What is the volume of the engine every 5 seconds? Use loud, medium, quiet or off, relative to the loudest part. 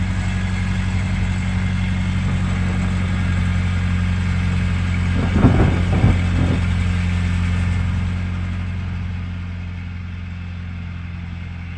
loud, loud, medium.